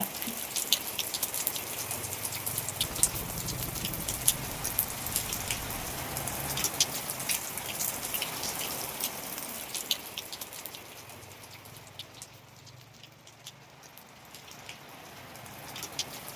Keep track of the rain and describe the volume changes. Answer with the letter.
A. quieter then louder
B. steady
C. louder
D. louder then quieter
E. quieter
E.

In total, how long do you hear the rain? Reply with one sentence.
The rain can be heard for 16 seconds in total.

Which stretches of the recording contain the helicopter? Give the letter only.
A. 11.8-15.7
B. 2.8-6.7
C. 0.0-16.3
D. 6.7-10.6
B.